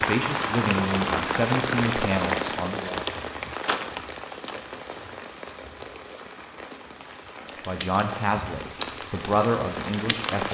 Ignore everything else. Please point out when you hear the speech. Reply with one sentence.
You can hear the speech from 0.0 to 3.0 s and from 7.7 to 10.4 s.